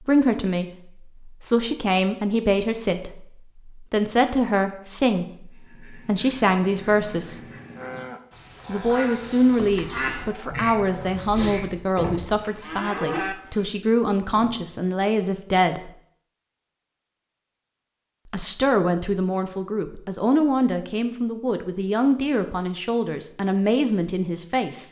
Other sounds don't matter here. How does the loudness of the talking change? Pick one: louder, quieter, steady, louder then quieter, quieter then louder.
steady.